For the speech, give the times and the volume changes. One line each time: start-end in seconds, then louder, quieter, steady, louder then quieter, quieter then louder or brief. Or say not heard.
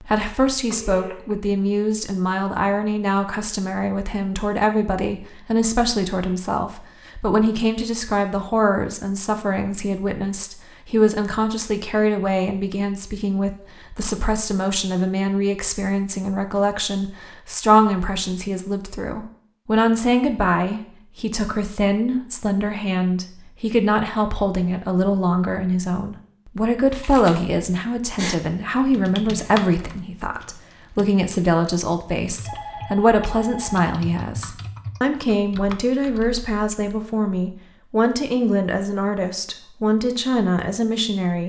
0.0-41.4 steady.